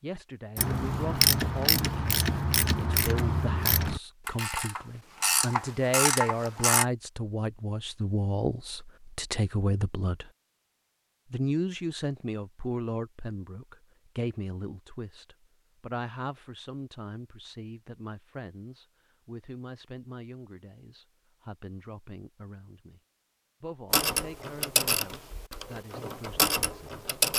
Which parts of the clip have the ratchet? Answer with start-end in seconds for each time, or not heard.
0.6-6.8, 23.9-27.3.